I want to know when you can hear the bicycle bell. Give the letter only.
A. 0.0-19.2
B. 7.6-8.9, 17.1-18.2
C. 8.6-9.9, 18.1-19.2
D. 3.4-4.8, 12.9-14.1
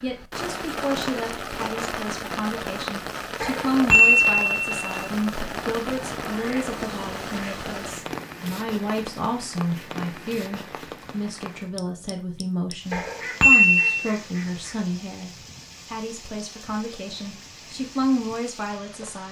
D.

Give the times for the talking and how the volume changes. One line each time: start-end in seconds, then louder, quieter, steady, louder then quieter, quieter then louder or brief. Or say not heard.
0.0-19.2 steady.